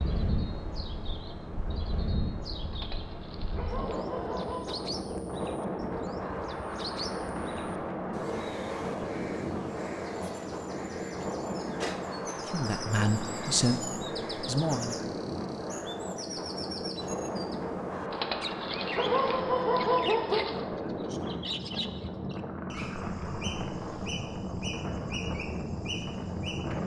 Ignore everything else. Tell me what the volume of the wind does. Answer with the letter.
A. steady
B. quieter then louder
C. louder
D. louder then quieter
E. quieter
A.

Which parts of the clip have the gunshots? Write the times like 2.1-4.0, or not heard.
not heard.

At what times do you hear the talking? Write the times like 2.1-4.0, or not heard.
12.4-15.1.